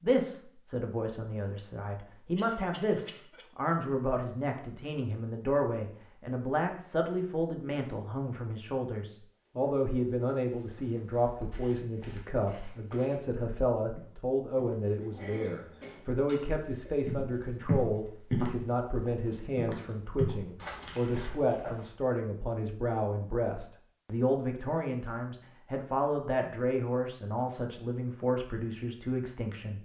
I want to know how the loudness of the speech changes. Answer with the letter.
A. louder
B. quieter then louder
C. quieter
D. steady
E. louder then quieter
D.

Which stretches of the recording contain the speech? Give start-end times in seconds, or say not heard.
0.0-29.8.